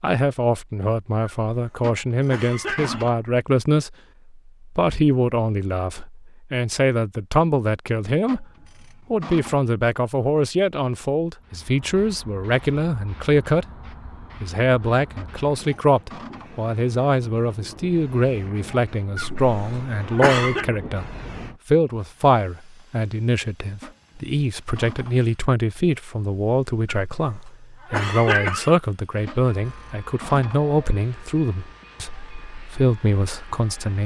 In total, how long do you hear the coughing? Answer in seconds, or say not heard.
5 s.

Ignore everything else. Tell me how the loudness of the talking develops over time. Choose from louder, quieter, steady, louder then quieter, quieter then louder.
steady.